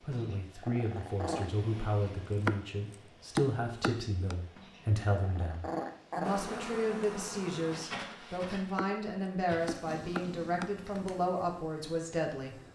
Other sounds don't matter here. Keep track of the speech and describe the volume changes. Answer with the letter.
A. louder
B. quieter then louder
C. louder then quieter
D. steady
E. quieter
D.